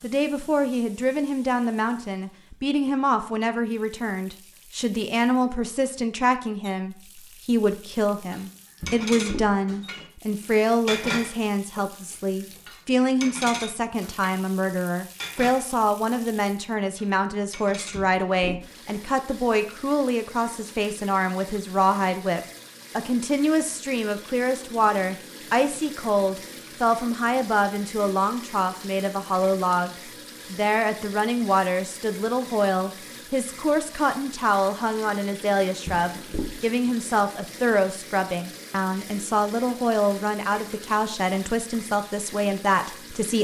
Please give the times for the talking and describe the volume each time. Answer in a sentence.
The talking can be heard from 0.0 to 43.3 s, at a steady volume.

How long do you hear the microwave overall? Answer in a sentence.
You can't hear the microwave here.